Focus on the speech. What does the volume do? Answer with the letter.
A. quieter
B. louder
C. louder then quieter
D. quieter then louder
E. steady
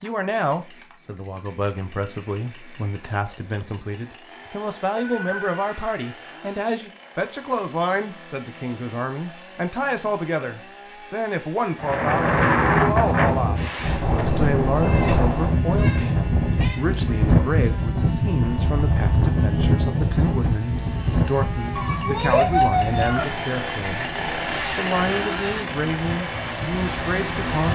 E.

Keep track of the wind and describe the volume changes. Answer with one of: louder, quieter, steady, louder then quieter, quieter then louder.
quieter.